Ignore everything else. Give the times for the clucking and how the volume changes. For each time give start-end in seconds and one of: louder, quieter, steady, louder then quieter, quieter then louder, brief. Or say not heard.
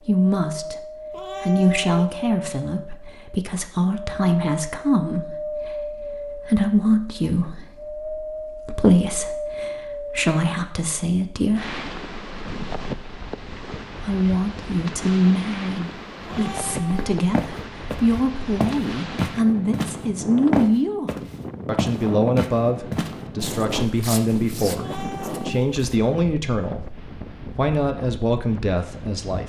not heard.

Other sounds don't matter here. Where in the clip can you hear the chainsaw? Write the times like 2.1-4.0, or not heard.
not heard.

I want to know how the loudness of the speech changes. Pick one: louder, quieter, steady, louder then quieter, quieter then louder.
steady.